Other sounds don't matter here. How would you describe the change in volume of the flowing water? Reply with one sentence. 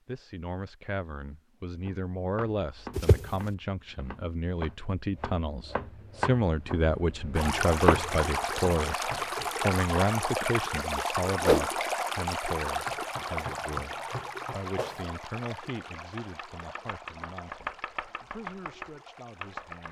The volume of the flowing water goes down.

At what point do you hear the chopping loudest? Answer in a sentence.
The loudest moment of the chopping is at 8 seconds.